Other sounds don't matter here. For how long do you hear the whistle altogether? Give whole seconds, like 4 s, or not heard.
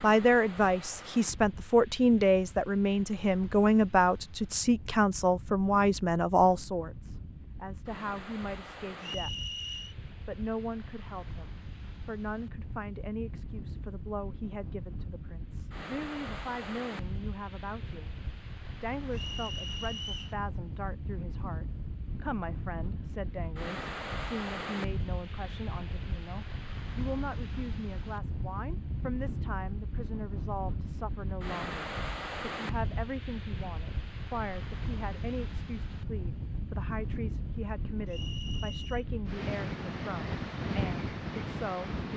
3 s.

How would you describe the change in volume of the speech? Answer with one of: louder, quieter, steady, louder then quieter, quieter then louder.
quieter.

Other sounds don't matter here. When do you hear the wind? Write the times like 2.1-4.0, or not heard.
0.0-42.1.